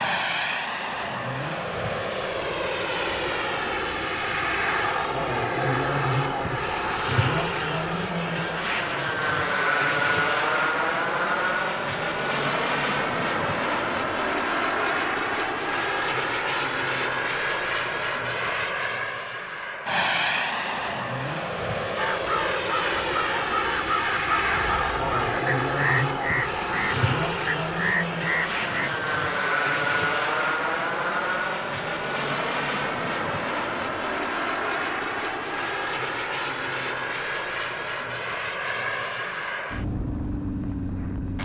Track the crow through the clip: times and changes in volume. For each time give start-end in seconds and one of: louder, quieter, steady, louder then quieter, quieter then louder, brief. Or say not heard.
21.9-28.9 steady.